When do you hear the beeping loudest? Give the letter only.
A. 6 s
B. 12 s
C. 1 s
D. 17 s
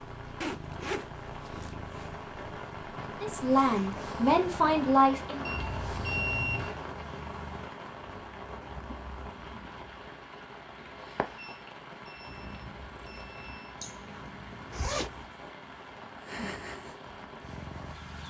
A.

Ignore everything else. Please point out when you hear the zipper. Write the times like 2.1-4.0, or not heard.
0.4-1.8, 13.8-15.1.